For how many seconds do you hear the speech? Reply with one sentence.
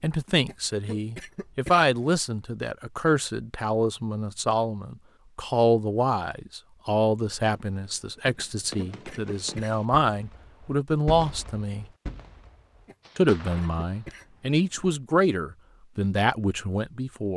The speech can be heard for 16 seconds in total.